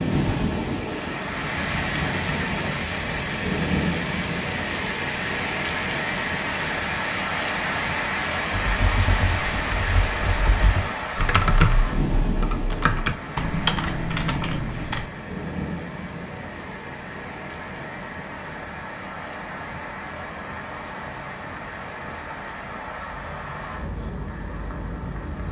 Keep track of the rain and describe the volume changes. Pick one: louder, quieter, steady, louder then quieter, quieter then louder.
quieter.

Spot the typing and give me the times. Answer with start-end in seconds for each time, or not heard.
8.6-15.1.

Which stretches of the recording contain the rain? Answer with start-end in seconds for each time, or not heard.
0.0-25.4.